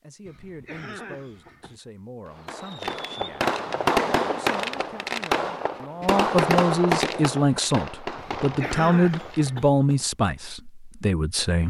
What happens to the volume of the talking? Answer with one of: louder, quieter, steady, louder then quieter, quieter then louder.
louder.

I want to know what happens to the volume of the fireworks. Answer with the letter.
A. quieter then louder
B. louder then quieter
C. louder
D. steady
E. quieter
E.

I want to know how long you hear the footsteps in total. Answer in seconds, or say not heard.
not heard.